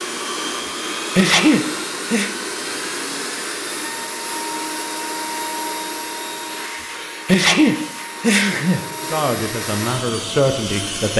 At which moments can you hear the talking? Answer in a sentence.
The talking can be heard from 9.1 to 11.1 s.